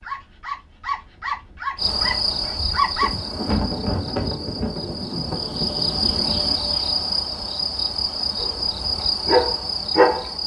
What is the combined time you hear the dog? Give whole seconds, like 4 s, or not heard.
5 s.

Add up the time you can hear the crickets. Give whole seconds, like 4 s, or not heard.
9 s.